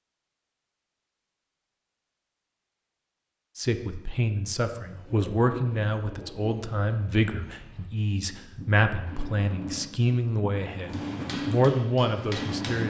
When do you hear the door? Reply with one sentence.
You can't hear the door here.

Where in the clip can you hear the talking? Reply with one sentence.
The talking can be heard from 3.5 to 12.8 s.